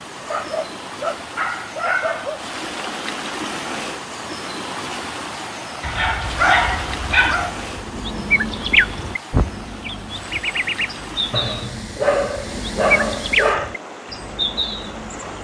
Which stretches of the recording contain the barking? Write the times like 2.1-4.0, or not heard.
0.1-2.4, 5.8-7.5, 11.3-13.8.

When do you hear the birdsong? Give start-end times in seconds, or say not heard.
7.5-15.3.